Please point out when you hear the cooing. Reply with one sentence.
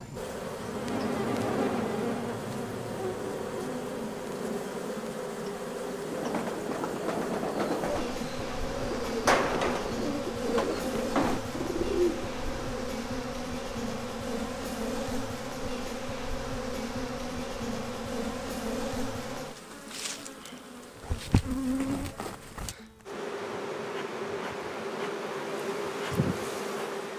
The cooing can be heard from 6.0 to 12.8 s.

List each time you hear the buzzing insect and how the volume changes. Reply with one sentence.
You can hear the buzzing insect from 0.0 to 27.1 s, at a steady volume.